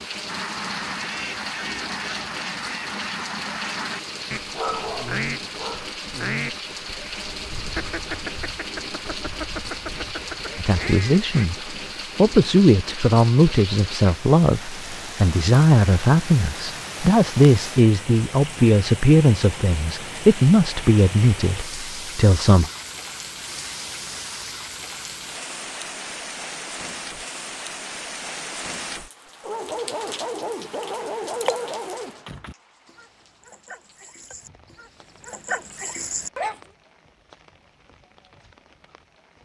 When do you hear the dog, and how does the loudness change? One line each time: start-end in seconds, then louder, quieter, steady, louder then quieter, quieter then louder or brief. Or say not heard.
4.5-6.0 brief
29.4-36.6 quieter then louder.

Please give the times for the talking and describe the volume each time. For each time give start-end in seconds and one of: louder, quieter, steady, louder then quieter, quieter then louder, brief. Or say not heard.
10.6-22.7 steady.